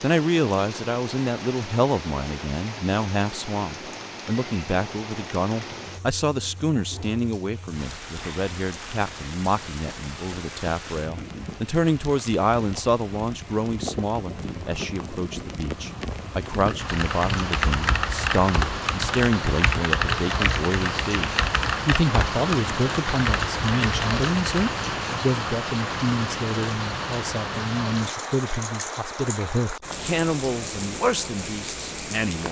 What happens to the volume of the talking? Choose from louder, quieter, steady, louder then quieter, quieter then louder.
steady.